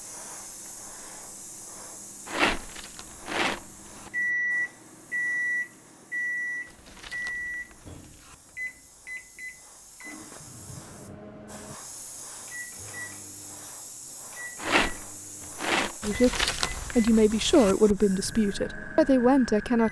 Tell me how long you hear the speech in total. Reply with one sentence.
The speech can be heard for 4 seconds in total.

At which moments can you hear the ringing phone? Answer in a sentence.
The ringing phone can't be heard in this clip.